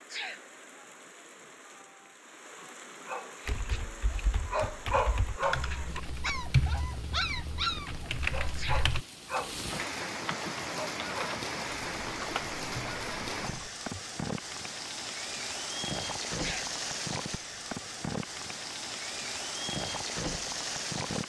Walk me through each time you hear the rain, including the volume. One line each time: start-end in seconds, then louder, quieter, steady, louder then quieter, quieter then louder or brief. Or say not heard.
0.0-21.2 louder.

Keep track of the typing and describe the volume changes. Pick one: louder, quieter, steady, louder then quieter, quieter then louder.
louder then quieter.